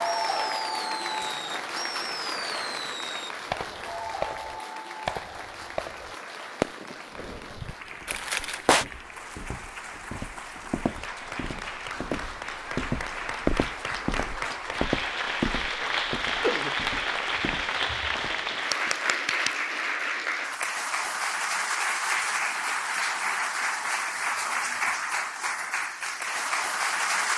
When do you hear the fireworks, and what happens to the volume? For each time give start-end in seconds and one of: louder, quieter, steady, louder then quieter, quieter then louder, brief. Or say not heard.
0.2-7.2 louder
8.1-8.8 brief.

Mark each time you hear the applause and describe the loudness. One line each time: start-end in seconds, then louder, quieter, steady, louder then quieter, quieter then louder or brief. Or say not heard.
0.0-27.3 quieter then louder.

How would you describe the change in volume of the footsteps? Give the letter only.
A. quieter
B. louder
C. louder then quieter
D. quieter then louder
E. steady
C.